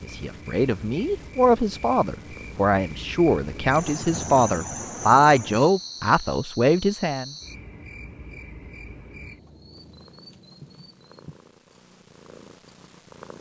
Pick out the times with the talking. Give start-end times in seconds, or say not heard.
0.0-7.3.